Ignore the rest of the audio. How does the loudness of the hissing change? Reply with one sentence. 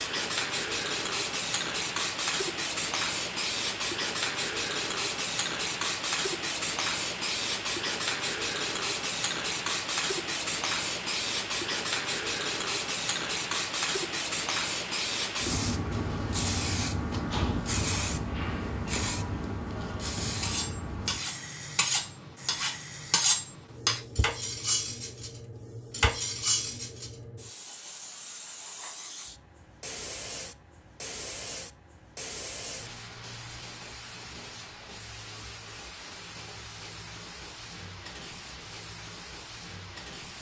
The loudness of the hissing goes down.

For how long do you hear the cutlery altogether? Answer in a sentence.
The cutlery can be heard for 6 seconds in total.